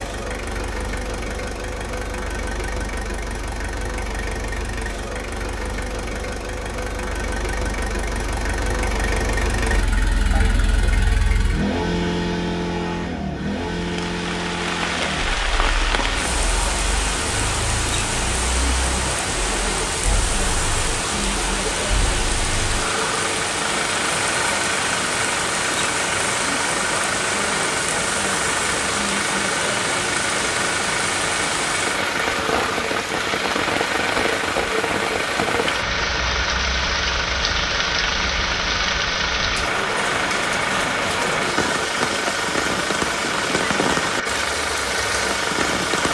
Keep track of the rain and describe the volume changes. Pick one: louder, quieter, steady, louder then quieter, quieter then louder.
steady.